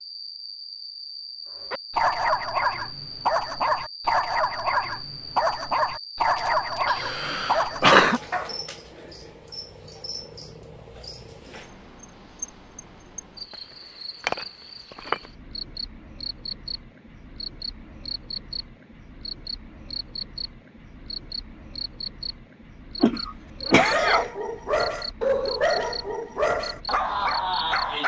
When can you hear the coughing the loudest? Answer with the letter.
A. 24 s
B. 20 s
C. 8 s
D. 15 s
C.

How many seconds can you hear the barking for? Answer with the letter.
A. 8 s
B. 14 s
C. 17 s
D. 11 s
D.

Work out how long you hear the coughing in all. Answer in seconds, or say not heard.
3 s.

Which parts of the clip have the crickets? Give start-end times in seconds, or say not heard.
0.0-28.0.